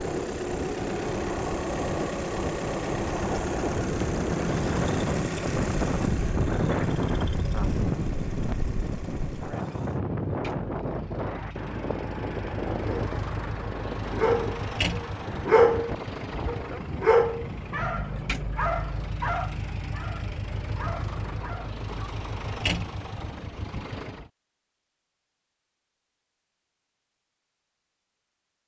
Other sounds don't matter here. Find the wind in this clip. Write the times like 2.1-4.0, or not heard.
0.0-17.9.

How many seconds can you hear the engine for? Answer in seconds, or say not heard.
24 s.